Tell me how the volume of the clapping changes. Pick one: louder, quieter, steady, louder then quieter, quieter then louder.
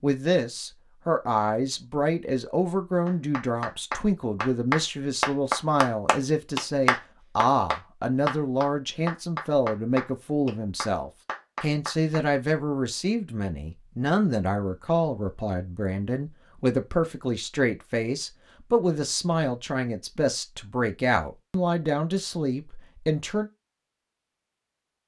quieter.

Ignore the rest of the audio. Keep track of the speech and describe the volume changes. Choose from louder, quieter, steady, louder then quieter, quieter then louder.
steady.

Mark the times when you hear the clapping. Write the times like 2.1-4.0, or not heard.
3.0-12.2.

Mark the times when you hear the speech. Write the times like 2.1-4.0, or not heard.
0.0-23.5.